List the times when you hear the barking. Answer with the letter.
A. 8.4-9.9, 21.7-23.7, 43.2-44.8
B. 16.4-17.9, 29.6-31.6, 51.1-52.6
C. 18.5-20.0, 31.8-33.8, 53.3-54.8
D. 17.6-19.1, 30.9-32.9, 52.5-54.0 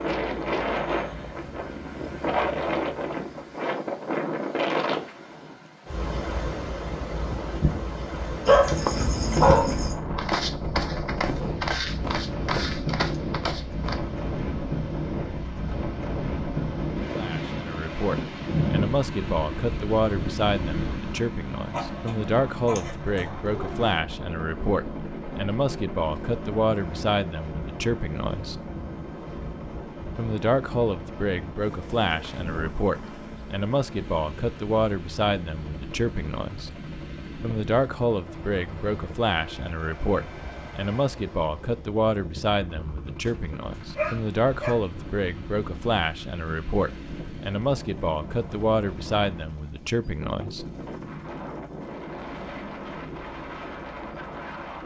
A.